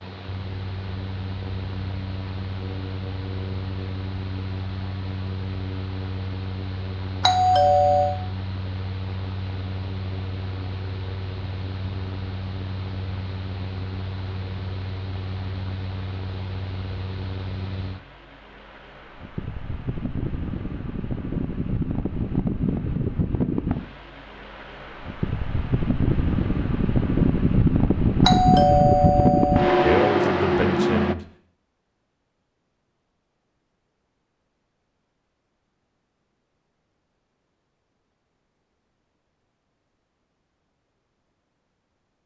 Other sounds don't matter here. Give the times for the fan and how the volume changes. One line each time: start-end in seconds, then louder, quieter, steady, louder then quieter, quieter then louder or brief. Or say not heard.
0.0-31.1 louder.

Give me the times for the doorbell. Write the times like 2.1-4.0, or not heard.
7.2-8.2, 28.2-30.1.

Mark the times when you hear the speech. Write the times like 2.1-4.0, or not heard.
29.9-31.2.